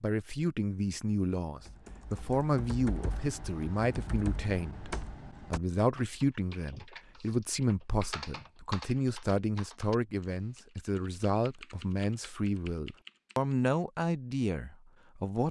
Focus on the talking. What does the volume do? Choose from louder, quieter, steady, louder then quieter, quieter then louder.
steady.